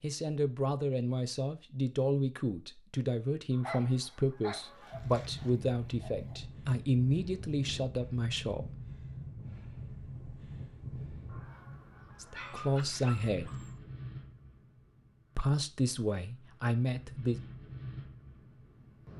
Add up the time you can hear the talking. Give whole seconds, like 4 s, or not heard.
12 s.